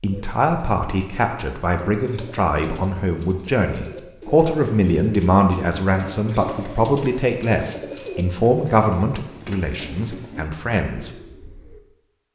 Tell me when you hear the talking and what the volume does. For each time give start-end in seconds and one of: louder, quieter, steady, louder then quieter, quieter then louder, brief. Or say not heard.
0.0-11.1 steady.